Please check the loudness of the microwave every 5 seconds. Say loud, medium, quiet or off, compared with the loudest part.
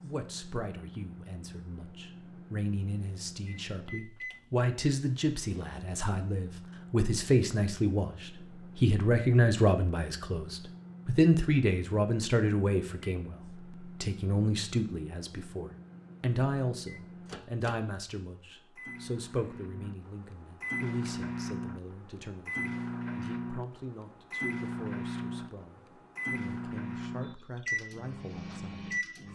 medium, medium, medium, medium, loud, loud.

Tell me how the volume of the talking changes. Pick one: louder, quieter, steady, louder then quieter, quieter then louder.
louder then quieter.